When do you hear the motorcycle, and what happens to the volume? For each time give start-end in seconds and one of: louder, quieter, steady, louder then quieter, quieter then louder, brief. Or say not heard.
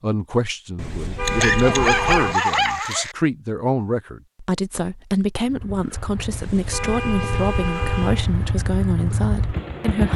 5.5-10.1 louder.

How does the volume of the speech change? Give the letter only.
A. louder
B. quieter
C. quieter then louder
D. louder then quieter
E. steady
E.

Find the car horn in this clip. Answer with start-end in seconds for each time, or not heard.
0.8-2.4, 6.3-8.2.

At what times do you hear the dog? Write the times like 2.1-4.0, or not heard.
1.2-3.1.